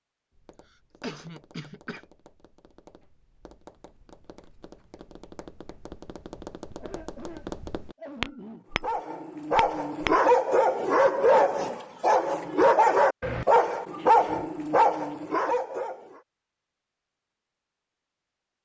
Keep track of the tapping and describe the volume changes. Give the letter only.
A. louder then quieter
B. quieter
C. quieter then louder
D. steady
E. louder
E.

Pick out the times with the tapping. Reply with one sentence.
The tapping can be heard from 0.3 to 10.2 s.